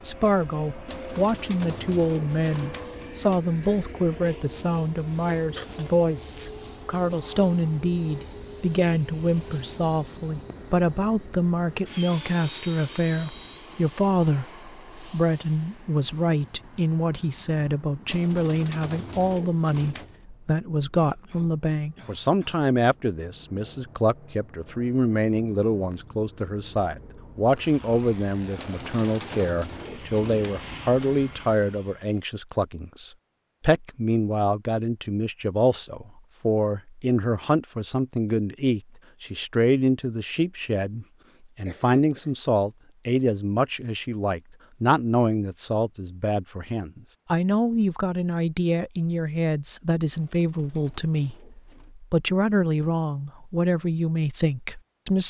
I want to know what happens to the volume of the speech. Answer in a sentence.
The loudness of the speech stays about the same.